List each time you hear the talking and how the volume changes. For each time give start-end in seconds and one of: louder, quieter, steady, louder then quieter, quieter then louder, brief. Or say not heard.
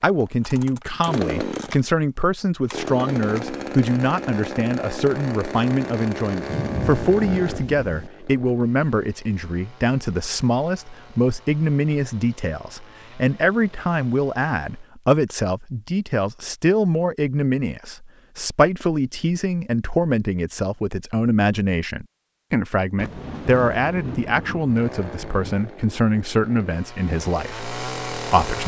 0.0-28.6 steady.